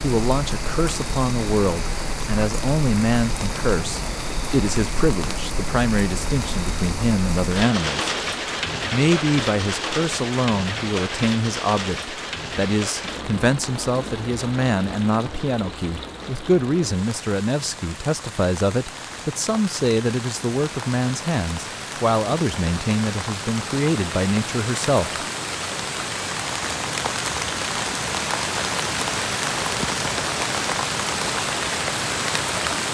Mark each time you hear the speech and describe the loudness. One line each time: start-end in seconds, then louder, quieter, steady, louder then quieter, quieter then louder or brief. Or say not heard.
0.0-8.2 steady
8.9-25.2 steady.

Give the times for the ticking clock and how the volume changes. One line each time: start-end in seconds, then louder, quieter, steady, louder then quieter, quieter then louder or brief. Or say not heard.
not heard.